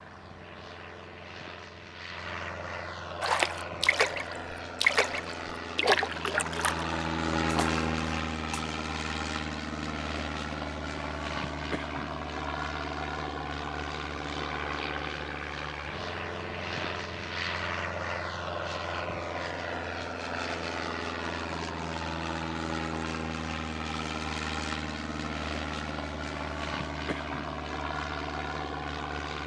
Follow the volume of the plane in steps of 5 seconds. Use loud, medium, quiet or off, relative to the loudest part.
medium, loud, loud, loud, loud, loud.